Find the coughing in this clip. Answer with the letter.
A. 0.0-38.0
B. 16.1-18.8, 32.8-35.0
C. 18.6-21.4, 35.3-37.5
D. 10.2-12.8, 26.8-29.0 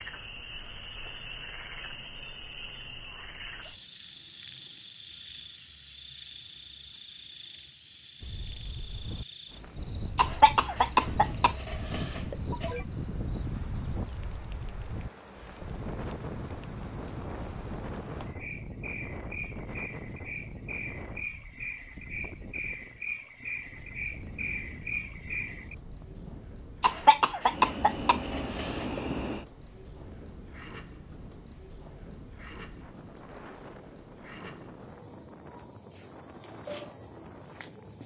D.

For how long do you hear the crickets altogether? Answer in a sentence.
The crickets can be heard for 38 seconds in total.